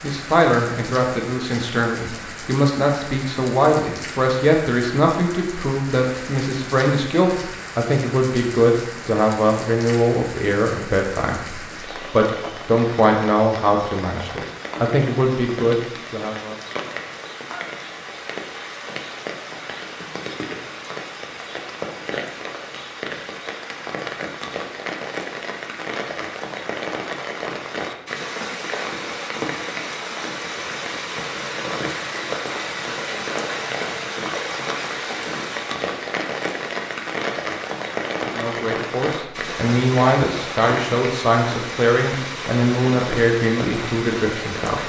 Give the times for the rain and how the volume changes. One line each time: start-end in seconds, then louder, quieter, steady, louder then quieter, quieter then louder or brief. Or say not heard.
0.0-44.8 louder.